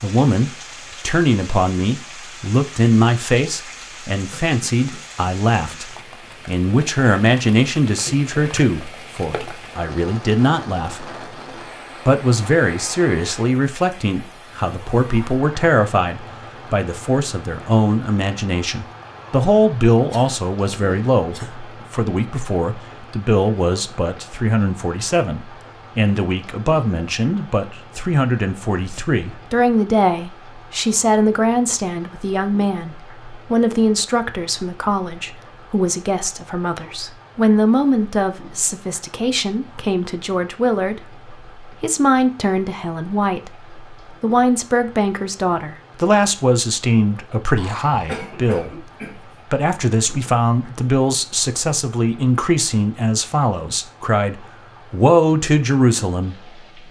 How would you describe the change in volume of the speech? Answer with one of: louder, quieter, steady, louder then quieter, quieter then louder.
steady.